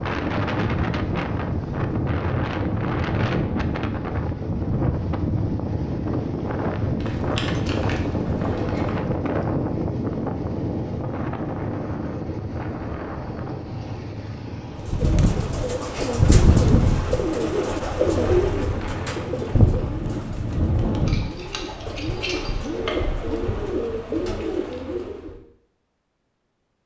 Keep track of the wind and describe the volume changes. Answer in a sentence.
The volume of the wind goes down.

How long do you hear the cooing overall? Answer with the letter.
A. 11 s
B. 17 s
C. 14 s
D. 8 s
A.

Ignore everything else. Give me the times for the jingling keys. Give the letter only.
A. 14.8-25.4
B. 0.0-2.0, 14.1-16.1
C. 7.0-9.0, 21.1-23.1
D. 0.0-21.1
C.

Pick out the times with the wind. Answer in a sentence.
You can hear the wind from 0.0 to 21.1 s.